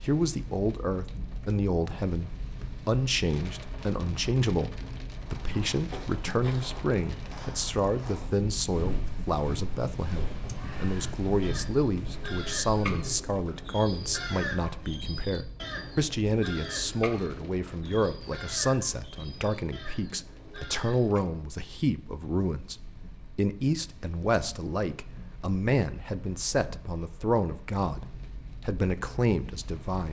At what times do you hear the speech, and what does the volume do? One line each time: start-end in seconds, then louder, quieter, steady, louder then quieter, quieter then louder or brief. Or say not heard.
0.0-30.0 steady.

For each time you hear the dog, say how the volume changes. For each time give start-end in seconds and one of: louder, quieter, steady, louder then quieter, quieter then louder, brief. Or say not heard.
not heard.